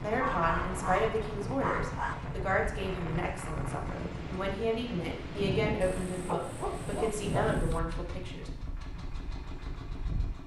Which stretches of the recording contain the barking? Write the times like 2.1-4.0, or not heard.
0.1-2.1, 5.8-7.8.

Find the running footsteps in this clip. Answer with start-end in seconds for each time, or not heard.
not heard.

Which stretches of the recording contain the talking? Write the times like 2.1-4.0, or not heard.
0.0-8.5.